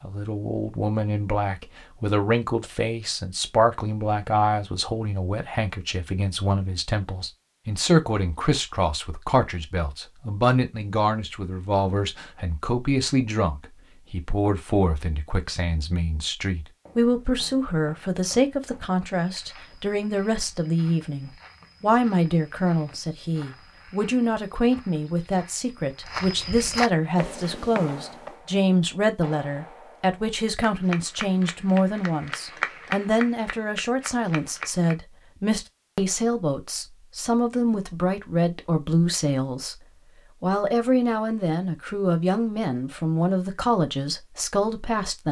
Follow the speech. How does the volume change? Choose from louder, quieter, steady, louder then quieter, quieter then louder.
steady.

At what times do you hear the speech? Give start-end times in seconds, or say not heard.
0.0-45.2.